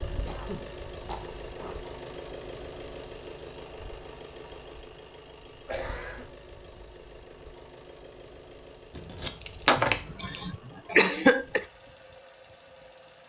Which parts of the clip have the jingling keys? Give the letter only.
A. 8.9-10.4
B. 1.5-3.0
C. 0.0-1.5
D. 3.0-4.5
A.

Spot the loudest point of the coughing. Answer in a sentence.
The loudest moment of the coughing is at 11 seconds.